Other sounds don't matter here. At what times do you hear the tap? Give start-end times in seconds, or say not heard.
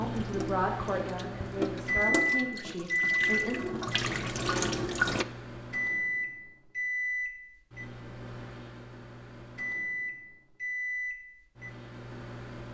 0.0-5.2.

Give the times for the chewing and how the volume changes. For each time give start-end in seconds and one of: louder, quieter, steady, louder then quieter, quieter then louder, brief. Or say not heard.
not heard.